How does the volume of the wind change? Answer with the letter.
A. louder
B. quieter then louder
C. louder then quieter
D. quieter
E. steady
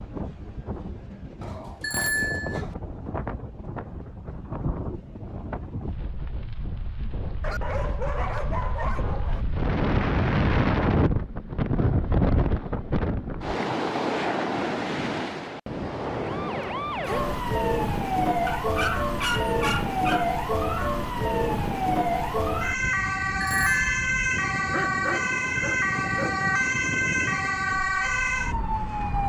C.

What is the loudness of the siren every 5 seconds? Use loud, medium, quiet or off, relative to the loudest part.
off, off, off, loud, loud, loud.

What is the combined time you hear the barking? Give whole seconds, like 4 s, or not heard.
7 s.